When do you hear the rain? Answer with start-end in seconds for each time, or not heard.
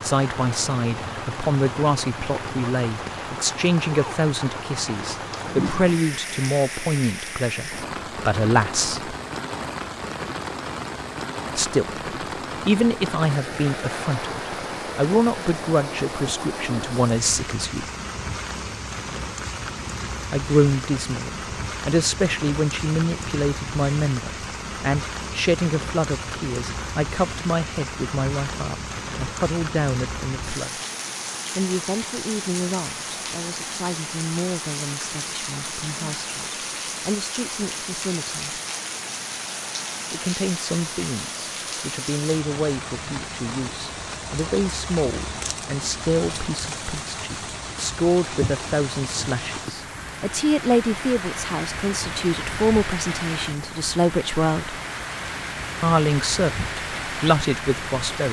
0.0-58.2.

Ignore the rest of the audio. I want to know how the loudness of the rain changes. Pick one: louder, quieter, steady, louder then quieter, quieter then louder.
steady.